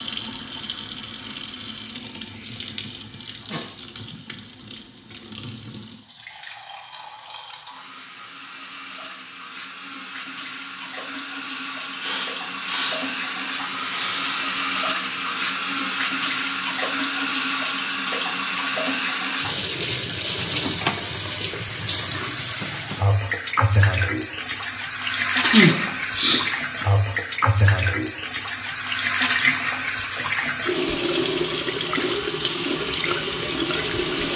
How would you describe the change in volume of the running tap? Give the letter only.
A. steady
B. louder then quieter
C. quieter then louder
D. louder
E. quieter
D.